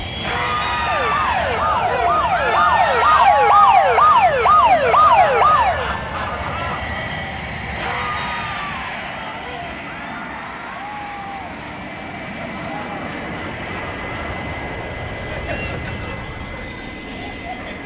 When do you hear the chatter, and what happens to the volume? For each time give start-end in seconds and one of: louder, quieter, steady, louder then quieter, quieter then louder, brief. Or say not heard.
0.1-17.8 quieter.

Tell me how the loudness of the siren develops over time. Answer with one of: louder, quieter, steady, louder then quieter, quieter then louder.
louder.